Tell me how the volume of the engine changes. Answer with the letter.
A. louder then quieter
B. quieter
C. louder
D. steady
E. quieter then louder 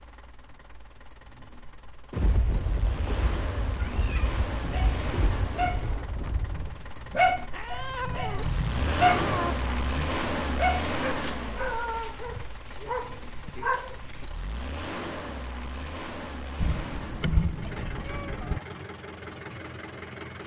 A.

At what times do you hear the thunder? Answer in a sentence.
You can hear the thunder from 2.1 to 6.7 s.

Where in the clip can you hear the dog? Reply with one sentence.
You can hear the dog from 4.5 to 14.2 s.